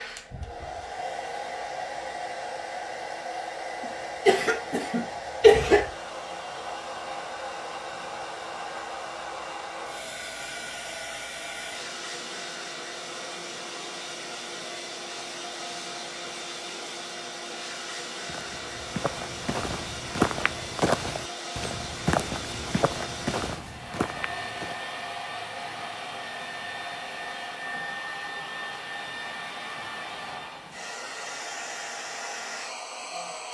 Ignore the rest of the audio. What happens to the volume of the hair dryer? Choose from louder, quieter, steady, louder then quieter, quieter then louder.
steady.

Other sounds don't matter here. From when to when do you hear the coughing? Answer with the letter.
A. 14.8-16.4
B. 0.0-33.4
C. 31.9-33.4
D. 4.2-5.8
D.